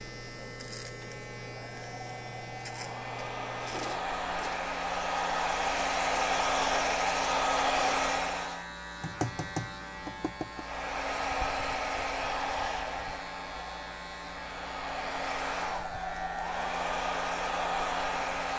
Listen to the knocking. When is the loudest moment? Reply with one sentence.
The loudest moment of the knocking is at 9 seconds.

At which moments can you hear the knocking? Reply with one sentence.
You can hear the knocking from 9.0 to 10.7 s.